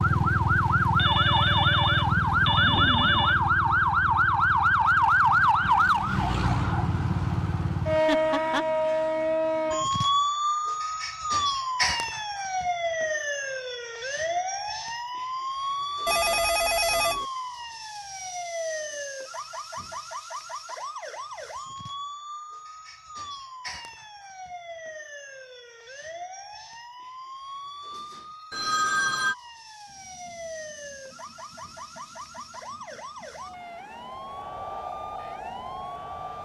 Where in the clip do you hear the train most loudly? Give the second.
35 s.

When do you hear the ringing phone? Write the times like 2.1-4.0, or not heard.
0.9-3.4, 16.1-17.2, 28.5-29.4.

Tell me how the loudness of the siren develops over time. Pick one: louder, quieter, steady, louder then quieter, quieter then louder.
quieter.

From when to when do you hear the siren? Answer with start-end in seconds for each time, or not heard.
0.0-36.4.